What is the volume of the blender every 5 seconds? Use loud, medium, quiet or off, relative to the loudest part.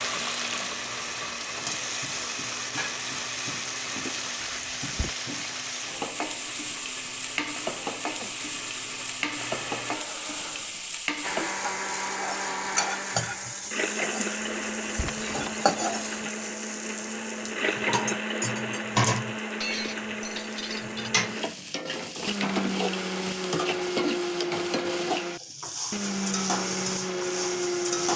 medium, medium, loud, loud, loud, loud.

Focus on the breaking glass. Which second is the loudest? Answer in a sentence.
The volume of the breaking glass peaks at 20 seconds.